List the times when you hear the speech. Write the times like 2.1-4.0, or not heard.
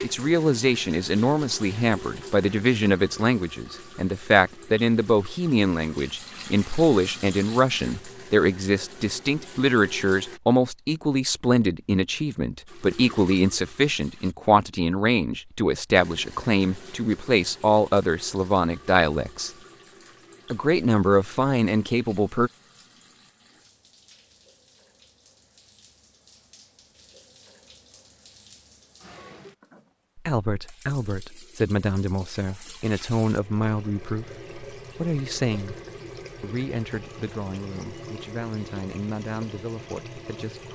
0.0-19.5, 20.5-22.5, 30.1-35.8, 36.4-40.7.